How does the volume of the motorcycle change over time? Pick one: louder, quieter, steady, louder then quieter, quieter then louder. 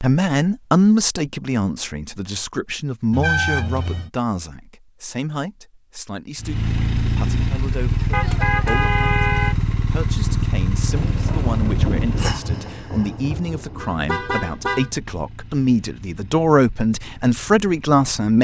quieter.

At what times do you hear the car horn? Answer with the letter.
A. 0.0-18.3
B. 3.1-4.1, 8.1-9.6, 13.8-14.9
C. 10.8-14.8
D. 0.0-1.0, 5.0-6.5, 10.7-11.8
B.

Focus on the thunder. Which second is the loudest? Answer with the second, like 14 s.
12 s.